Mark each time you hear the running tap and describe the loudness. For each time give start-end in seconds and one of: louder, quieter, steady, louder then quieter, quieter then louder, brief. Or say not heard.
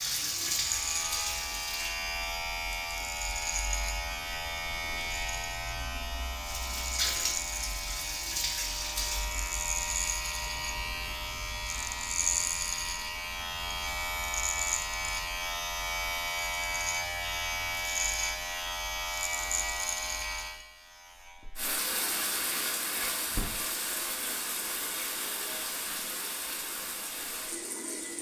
0.0-1.9 brief
6.4-9.3 brief
21.6-28.1 quieter.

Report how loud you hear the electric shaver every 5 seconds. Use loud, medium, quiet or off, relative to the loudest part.
loud, loud, loud, loud, medium, off.